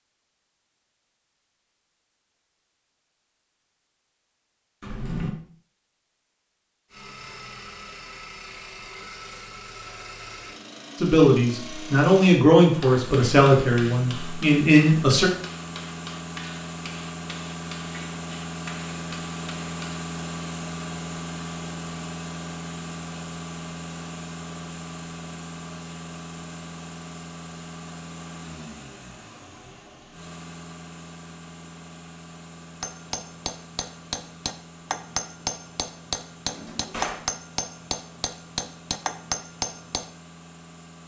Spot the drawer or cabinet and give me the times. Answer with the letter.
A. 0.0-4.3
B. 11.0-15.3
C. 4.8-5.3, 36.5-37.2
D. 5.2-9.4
C.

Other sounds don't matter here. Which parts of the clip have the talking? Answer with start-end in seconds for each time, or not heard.
11.0-15.3.